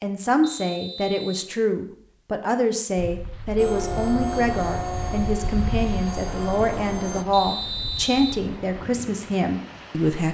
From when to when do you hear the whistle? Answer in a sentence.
The whistle can be heard from 0.4 to 1.5 s and from 7.3 to 8.4 s.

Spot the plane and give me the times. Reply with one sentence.
You can hear the plane from 3.5 to 7.2 s.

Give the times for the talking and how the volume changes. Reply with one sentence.
The talking can be heard from 0.0 to 10.2 s, at a steady volume.